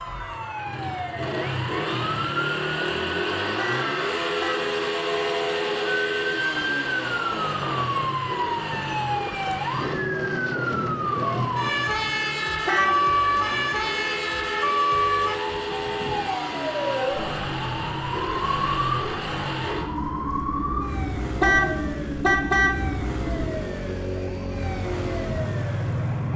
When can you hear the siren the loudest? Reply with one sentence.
The volume of the siren peaks at 13 seconds.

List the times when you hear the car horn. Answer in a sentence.
You can hear the car horn from 3.5 to 4.6 s, from 12.7 to 13.1 s and from 21.4 to 22.9 s.